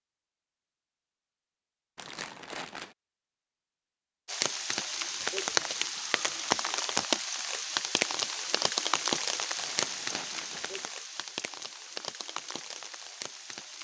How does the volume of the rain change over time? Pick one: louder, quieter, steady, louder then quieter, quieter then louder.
quieter.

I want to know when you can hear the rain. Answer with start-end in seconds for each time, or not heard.
4.2-13.8.